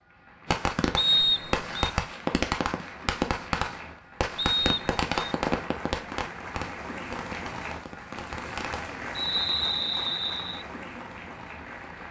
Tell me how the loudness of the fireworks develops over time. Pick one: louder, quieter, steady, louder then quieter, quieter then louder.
quieter.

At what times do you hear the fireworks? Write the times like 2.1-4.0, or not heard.
0.5-8.9.